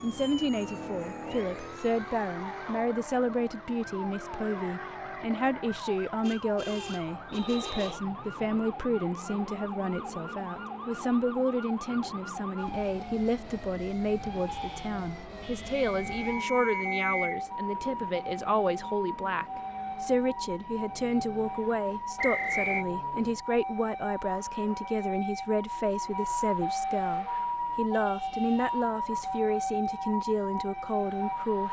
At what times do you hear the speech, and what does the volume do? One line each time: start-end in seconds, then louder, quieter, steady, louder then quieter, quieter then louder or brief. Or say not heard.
0.0-31.6 steady.